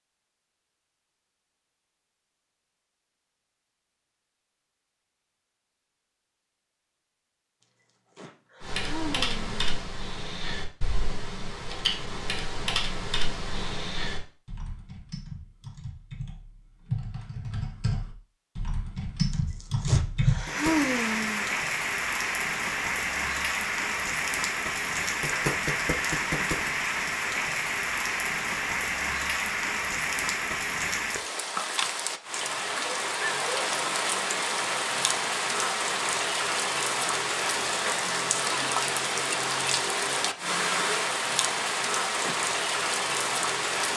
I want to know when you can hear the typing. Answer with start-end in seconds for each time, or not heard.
8.6-20.4.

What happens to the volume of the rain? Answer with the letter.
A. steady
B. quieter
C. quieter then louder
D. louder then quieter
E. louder
A.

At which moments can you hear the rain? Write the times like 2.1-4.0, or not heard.
20.4-43.9.